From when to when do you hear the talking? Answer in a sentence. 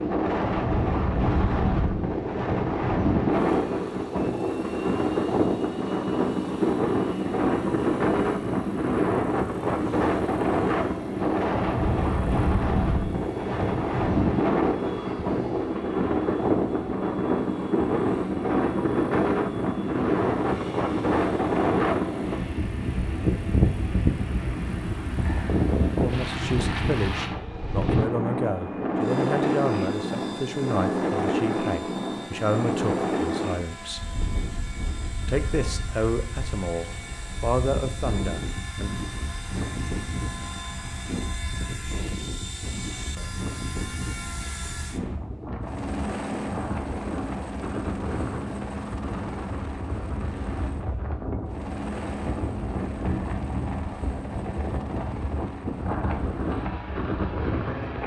The talking can be heard from 26.0 to 34.0 s and from 35.2 to 38.9 s.